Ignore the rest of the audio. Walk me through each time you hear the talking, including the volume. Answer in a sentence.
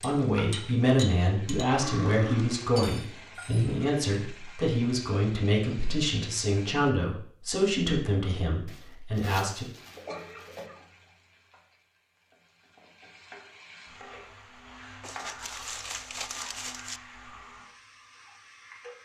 The talking can be heard from 0.0 to 9.7 s, at a steady volume.